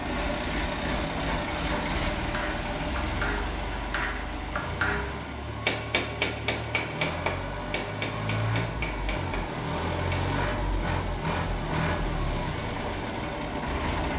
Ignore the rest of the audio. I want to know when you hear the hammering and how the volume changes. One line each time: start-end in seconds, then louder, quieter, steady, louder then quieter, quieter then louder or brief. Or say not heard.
0.8-10.3 louder then quieter.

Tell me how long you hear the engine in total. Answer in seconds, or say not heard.
14 s.